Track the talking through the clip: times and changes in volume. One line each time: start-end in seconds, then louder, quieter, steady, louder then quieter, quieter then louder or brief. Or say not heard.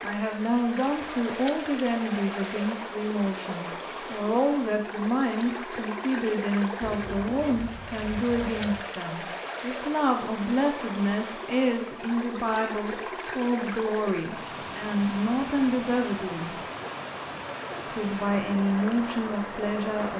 0.0-16.6 steady
17.9-20.1 brief.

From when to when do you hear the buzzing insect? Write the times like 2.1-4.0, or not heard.
not heard.